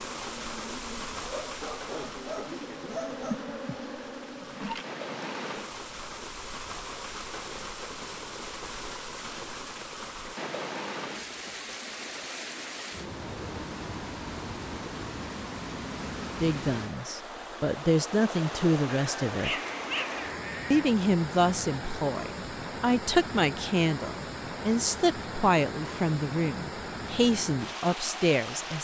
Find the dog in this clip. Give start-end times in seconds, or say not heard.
1.4-3.4, 19.0-20.9.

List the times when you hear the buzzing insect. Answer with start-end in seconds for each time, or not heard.
0.0-5.5.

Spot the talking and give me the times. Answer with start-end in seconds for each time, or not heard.
16.4-19.6, 20.7-28.7.